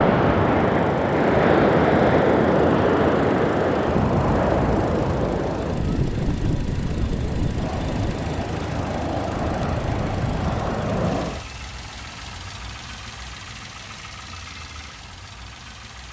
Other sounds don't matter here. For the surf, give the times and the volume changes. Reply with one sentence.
The surf can be heard from 0.0 to 11.4 s, getting quieter.